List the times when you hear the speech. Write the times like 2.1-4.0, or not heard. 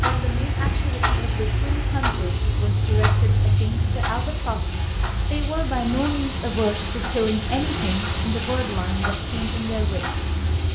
0.0-10.7.